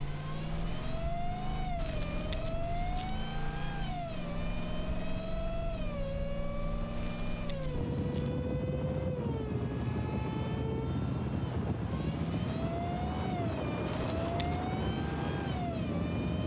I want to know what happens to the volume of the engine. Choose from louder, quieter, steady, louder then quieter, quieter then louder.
steady.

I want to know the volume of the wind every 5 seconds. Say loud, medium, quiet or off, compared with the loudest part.
quiet, loud, loud, loud.